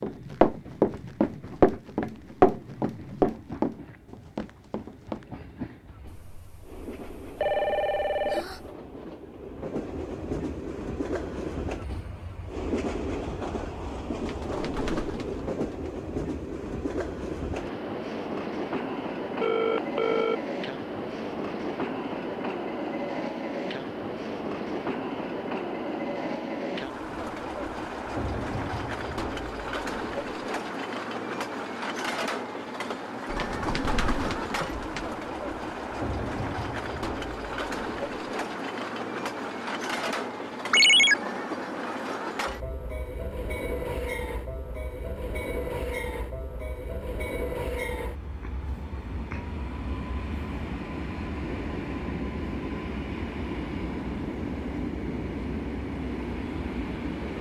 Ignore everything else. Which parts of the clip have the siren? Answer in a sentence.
The siren can't be heard in this clip.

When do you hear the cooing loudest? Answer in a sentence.
The loudest moment of the cooing is at 34 seconds.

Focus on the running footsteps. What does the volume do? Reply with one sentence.
The volume of the running footsteps goes down.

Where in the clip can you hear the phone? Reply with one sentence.
The phone can be heard from 6.0 to 8.6 s, from 19.4 to 20.4 s and from 40.7 to 41.1 s.